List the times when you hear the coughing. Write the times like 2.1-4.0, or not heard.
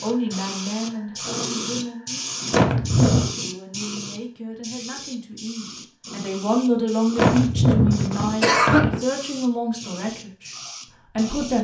2.5-3.3, 7.2-9.0.